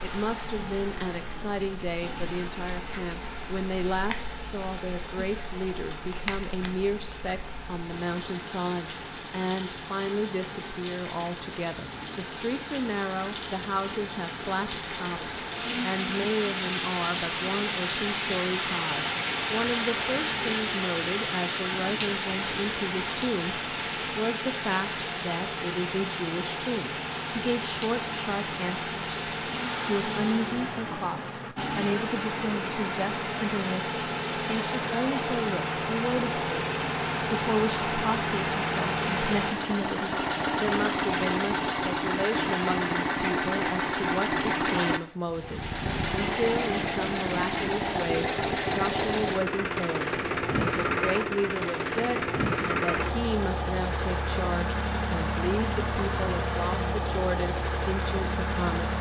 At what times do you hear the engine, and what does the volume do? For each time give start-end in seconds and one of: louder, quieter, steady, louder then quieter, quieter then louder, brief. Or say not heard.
0.0-58.9 louder.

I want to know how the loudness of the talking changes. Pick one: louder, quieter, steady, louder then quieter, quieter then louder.
steady.